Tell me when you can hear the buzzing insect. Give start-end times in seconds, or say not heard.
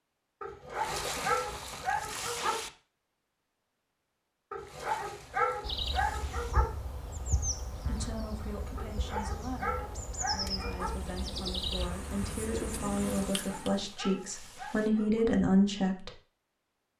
5.6-13.3.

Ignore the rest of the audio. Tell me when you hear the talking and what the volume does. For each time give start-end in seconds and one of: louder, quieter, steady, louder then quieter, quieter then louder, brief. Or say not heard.
7.8-16.1 louder.